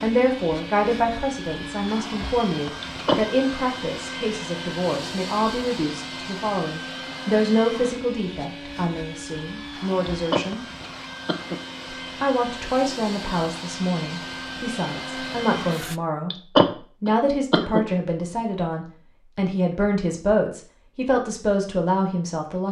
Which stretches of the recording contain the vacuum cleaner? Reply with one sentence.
You can hear the vacuum cleaner from 0.0 to 16.0 s.